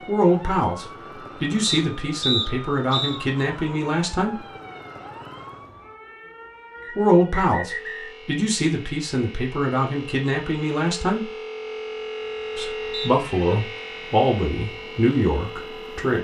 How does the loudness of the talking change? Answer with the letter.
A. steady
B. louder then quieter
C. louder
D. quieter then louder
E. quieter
A.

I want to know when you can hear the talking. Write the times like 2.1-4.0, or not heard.
0.1-4.5, 6.9-11.3, 12.6-16.1.